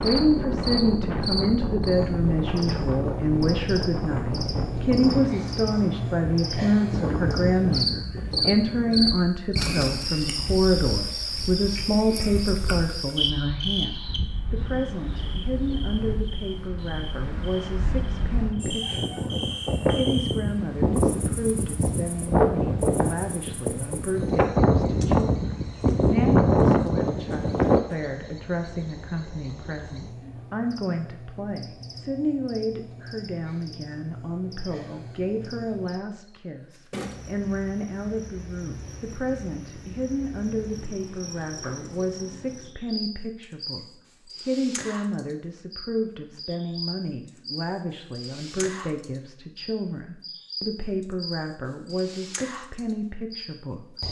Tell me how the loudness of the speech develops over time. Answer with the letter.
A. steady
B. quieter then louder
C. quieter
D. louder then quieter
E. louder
C.